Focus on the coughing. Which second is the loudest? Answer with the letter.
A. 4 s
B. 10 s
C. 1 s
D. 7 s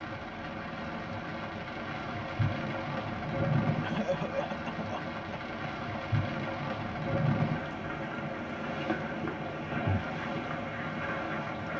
A.